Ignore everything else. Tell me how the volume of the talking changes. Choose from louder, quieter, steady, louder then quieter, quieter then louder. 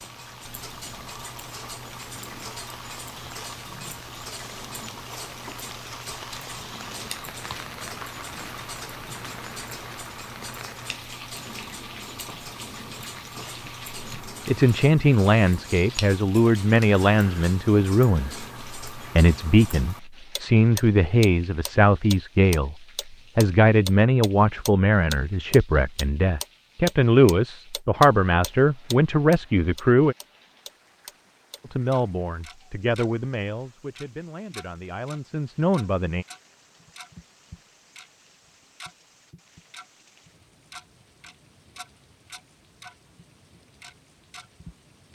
quieter.